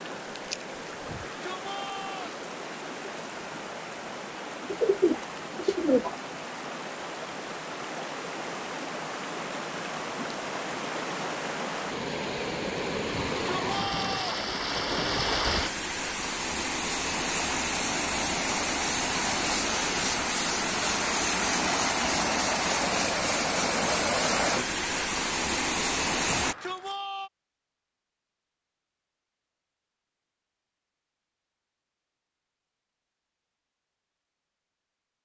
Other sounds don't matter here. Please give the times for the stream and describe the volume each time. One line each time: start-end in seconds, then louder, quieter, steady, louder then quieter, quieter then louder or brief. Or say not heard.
0.0-26.6 louder.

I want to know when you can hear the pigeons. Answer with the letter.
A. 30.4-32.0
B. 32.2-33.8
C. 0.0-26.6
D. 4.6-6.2
D.